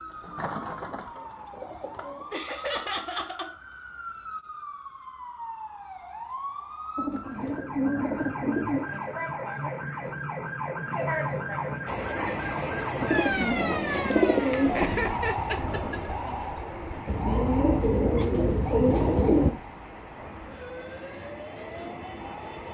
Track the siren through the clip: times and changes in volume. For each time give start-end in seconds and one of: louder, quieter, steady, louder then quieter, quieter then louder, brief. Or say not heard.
0.0-22.6 louder then quieter.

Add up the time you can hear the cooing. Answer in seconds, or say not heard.
9 s.